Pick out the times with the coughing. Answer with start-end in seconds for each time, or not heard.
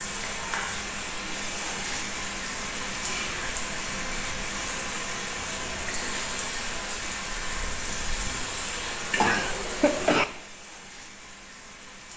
9.2-10.2.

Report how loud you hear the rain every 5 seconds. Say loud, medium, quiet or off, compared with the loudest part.
loud, loud, medium.